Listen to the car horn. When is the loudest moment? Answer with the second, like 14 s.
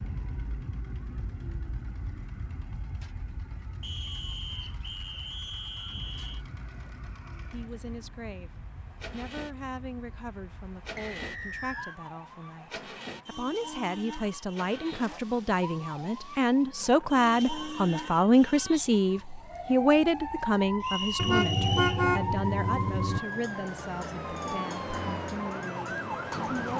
22 s.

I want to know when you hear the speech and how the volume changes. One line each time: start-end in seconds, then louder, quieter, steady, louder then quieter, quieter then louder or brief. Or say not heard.
7.5-26.7 louder then quieter.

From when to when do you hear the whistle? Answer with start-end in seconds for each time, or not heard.
3.8-6.5, 10.9-12.0, 20.8-22.1.